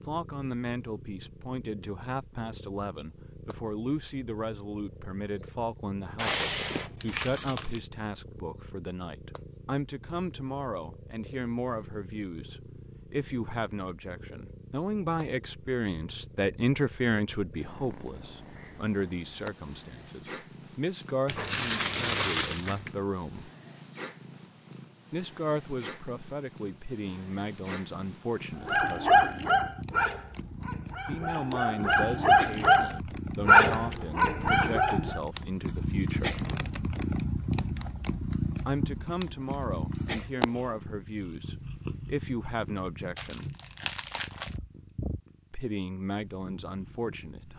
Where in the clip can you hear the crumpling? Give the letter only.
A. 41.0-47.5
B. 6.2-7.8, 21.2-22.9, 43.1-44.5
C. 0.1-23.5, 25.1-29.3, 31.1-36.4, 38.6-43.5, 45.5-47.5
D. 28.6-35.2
B.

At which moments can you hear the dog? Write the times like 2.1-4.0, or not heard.
28.6-35.2.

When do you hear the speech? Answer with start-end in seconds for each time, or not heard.
0.1-23.5, 25.1-29.3, 31.1-36.4, 38.6-43.5, 45.5-47.5.